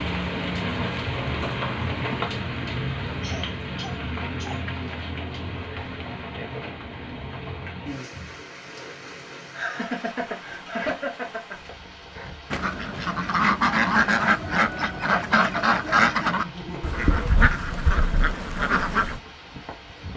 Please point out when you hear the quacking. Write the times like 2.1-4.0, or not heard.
12.5-19.2.